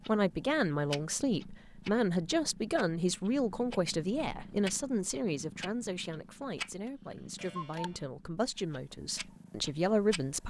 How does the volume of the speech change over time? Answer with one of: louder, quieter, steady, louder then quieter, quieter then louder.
quieter then louder.